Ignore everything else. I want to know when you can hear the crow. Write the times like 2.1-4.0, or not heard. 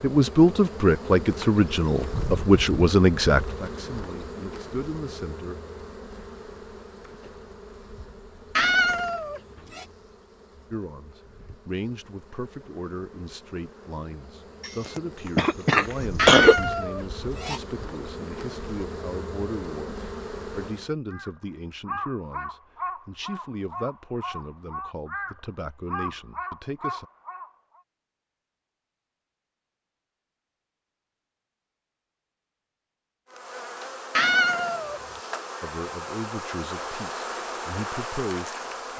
21.1-27.8.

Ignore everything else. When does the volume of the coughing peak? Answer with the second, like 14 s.
16 s.